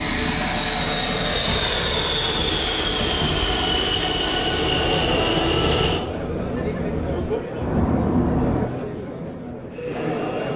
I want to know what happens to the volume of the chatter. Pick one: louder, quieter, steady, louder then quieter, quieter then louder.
steady.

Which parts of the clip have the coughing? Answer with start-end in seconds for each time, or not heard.
not heard.